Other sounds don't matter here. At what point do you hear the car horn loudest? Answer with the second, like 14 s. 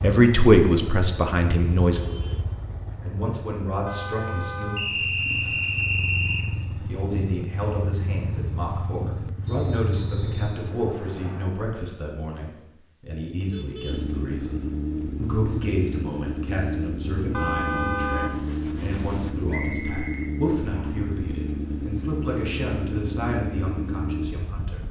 18 s.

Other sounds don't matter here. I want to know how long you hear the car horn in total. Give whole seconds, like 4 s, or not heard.
5 s.